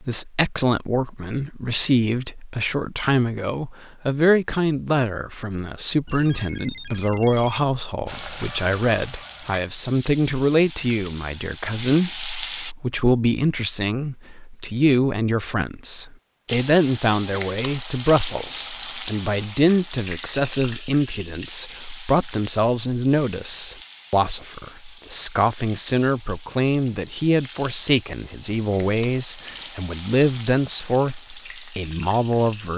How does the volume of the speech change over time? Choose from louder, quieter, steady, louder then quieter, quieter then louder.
steady.